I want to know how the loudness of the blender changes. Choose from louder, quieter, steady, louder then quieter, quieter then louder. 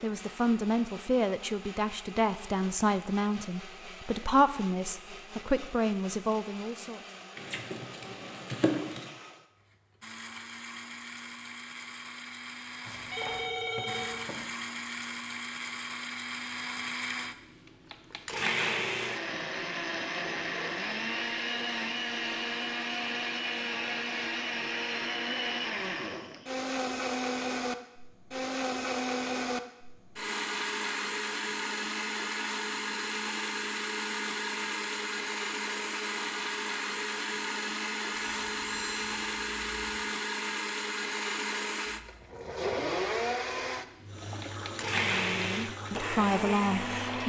louder.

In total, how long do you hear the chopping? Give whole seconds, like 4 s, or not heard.
2 s.